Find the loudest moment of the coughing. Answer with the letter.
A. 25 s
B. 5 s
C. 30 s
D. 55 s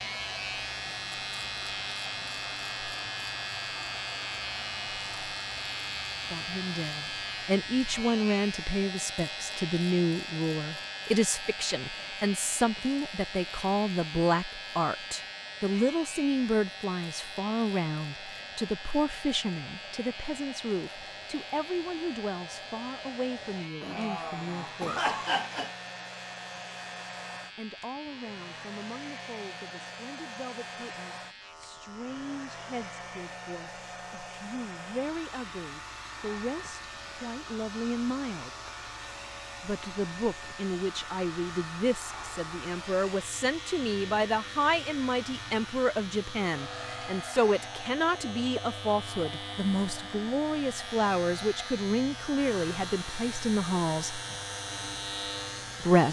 A.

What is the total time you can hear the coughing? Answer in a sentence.
The coughing can be heard for 2 seconds in total.